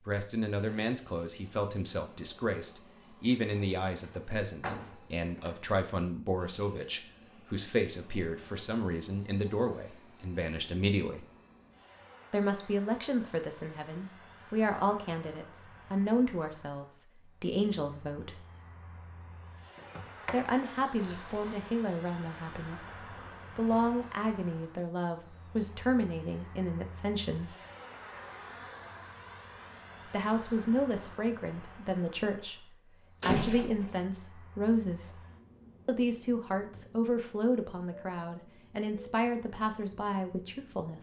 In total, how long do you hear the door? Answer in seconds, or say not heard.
5 s.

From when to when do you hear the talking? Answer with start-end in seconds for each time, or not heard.
0.1-11.3, 12.3-18.4, 20.3-27.6, 30.1-35.2, 35.9-40.9.